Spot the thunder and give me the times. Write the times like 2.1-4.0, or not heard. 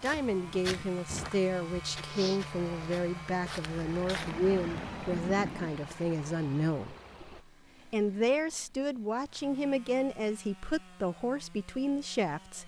4.2-5.7.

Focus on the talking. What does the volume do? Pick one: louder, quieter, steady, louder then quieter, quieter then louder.
steady.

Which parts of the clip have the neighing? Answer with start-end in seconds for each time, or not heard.
not heard.